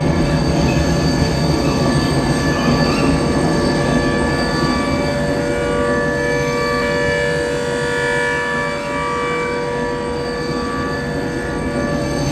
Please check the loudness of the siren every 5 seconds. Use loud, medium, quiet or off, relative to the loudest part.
medium, loud, medium.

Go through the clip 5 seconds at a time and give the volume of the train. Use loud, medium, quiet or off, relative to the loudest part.
loud, medium, medium.